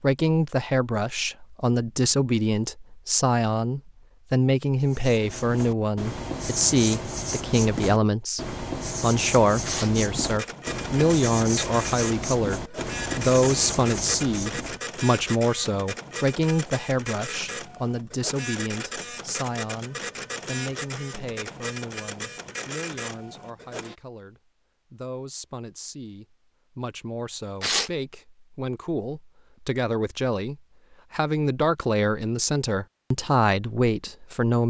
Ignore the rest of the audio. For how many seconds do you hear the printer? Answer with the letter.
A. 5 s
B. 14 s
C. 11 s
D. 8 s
B.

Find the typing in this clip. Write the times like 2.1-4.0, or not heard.
not heard.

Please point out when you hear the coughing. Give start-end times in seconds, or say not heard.
not heard.